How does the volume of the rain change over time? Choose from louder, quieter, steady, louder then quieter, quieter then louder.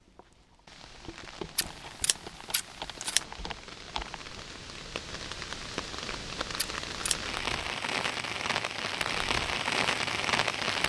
louder.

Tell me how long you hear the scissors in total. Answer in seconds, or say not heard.
2 s.